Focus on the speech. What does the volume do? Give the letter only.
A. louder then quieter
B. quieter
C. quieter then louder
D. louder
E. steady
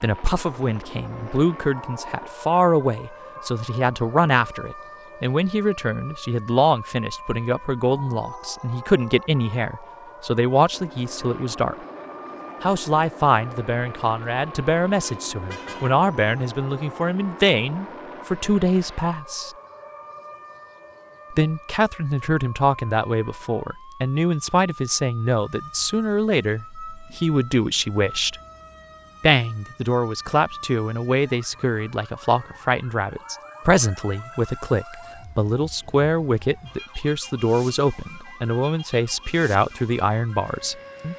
E.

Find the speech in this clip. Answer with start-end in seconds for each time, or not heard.
0.0-11.8, 12.6-19.5, 21.3-28.4, 29.2-41.1.